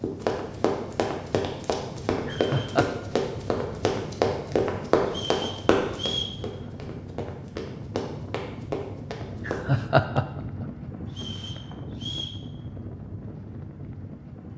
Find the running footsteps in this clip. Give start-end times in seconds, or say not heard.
0.0-9.7.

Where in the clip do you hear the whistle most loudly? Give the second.
6 s.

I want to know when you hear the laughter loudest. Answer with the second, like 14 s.
10 s.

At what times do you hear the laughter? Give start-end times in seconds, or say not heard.
2.2-2.9, 9.3-10.7.